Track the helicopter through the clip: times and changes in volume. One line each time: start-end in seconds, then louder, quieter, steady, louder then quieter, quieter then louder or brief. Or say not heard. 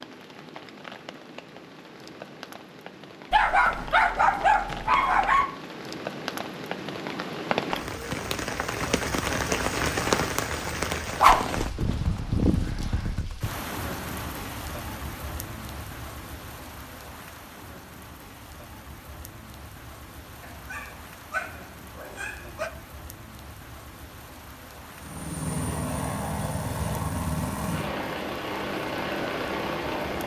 24.9-30.2 steady.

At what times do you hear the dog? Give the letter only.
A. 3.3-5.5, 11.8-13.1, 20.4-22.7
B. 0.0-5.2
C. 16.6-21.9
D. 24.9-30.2
A.